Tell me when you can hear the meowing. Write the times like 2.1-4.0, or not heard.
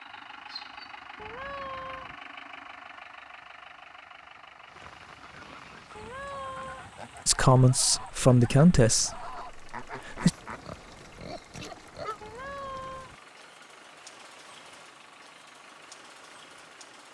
1.1-2.1, 6.0-6.9, 12.2-13.2.